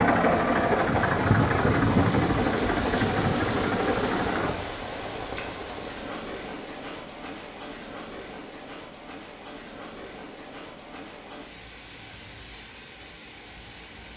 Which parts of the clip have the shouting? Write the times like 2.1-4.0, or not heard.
not heard.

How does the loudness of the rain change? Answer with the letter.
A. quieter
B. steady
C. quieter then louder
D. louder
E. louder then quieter
A.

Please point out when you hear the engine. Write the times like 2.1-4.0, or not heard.
0.0-4.5.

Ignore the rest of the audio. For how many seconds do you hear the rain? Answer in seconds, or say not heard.
14 s.